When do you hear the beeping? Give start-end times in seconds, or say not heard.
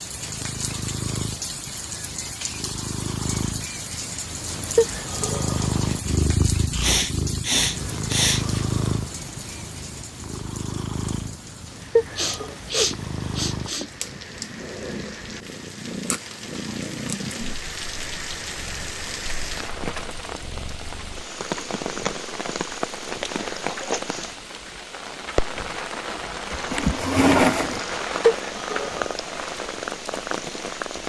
4.8-5.7, 11.9-12.6, 28.2-29.1.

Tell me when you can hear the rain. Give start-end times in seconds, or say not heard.
0.0-31.0.